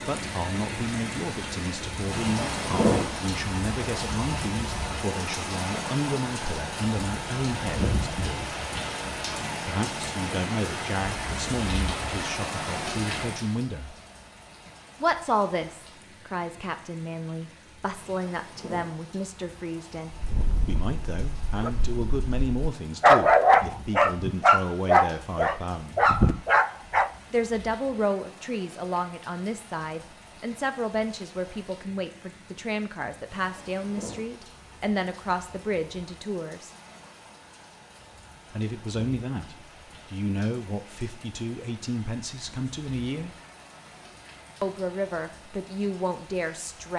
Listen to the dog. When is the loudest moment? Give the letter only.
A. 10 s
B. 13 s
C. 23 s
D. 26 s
C.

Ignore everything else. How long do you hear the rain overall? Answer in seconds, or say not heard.
47 s.